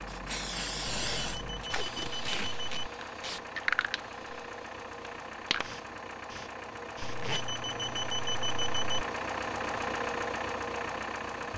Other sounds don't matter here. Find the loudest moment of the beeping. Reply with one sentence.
The loudest moment of the beeping is at 8 seconds.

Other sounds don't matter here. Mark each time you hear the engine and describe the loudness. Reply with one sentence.
The engine can be heard from 0.0 to 11.5 s, getting louder.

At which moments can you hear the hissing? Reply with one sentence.
The hissing can be heard from 0.0 to 7.3 s.